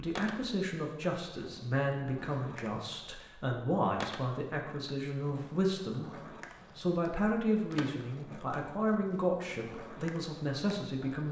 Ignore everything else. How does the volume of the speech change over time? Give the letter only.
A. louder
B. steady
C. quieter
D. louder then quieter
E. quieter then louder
B.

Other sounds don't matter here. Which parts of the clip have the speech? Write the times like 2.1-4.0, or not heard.
0.0-11.2.